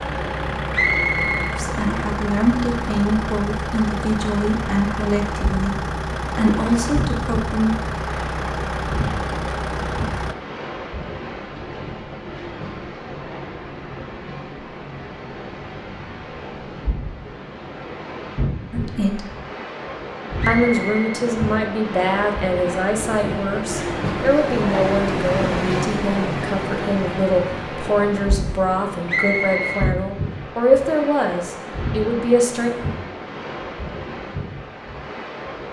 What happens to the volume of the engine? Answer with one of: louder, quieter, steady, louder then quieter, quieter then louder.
steady.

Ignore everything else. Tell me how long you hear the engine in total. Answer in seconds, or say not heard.
10 s.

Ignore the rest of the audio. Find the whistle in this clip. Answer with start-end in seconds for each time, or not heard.
0.7-1.6, 20.4-21.2, 29.1-29.9.